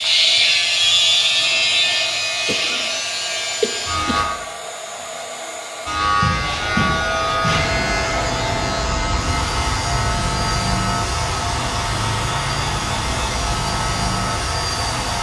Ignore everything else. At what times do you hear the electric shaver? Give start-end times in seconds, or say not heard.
0.0-4.2, 5.8-15.1.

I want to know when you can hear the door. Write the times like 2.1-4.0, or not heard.
not heard.